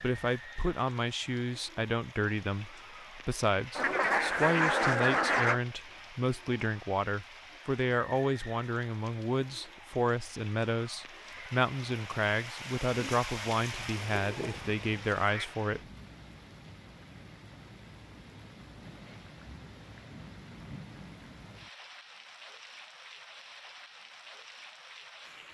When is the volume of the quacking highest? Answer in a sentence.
The loudest moment of the quacking is at 5 seconds.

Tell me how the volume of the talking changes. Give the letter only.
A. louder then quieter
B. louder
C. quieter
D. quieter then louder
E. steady
E.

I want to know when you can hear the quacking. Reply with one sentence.
You can hear the quacking from 3.8 to 5.6 s and from 13.9 to 15.6 s.